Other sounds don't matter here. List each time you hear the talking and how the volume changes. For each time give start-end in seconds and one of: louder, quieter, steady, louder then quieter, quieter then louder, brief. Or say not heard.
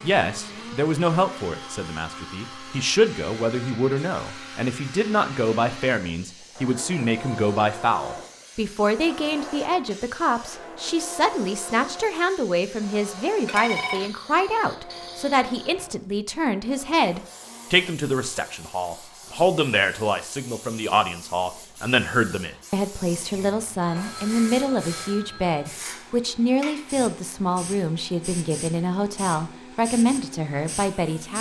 0.0-31.3 steady.